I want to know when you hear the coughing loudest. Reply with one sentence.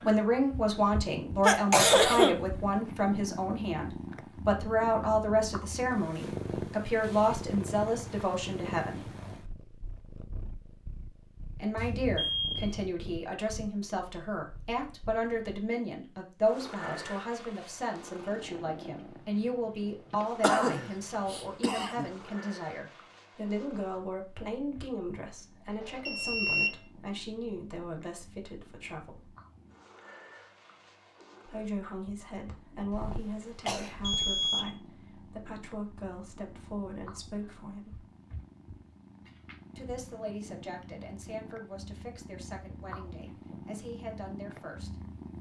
The volume of the coughing peaks at 2 seconds.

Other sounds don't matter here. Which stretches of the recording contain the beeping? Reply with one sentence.
The beeping can be heard from 11.8 to 12.9 s, from 25.8 to 26.8 s and from 34.0 to 34.6 s.